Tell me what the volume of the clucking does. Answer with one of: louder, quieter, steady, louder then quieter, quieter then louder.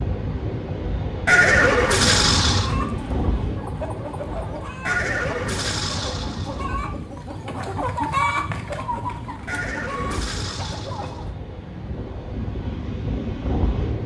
louder then quieter.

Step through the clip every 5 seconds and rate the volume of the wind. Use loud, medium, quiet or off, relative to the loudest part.
loud, medium, loud.